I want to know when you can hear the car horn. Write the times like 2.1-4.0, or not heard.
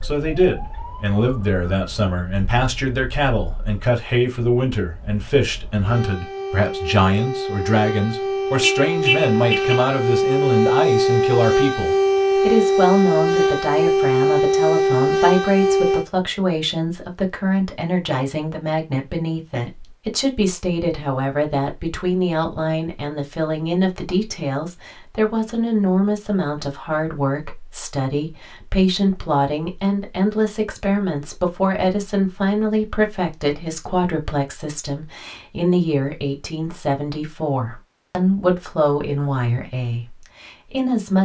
8.6-9.8.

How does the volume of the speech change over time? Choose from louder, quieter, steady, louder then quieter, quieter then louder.
steady.